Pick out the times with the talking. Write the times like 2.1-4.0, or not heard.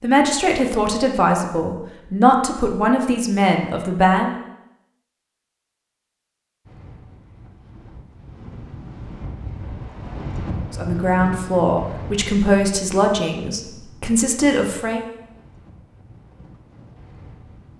0.0-4.3, 10.7-15.0.